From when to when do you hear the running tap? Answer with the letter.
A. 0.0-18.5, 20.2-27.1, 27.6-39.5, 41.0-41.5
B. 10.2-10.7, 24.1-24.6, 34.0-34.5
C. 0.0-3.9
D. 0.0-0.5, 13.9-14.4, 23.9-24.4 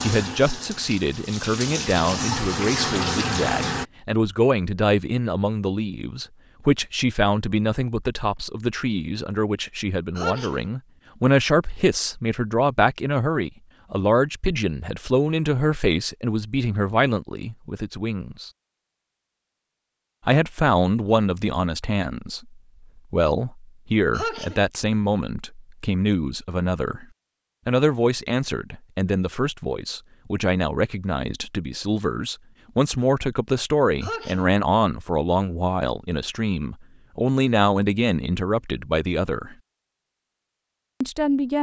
C.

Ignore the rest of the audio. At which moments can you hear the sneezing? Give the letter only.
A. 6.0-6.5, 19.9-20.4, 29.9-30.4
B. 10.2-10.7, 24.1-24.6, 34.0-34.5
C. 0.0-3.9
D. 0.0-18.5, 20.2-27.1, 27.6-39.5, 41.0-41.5
B.